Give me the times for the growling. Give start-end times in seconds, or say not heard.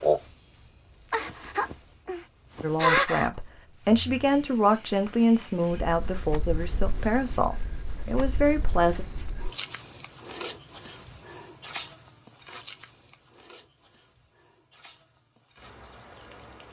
not heard.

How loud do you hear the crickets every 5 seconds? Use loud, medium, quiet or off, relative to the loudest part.
loud, medium, medium, quiet.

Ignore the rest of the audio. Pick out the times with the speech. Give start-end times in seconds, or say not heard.
2.6-9.1.